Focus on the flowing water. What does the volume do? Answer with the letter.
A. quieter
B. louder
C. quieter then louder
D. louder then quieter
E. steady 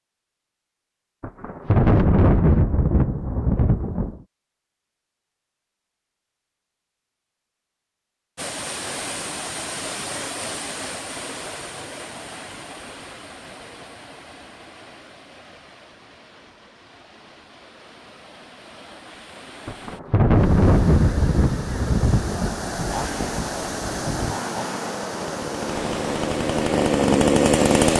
C.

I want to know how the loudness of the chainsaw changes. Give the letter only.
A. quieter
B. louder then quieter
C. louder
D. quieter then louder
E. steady
C.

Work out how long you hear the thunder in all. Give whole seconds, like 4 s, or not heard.
8 s.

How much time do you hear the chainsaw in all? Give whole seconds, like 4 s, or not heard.
5 s.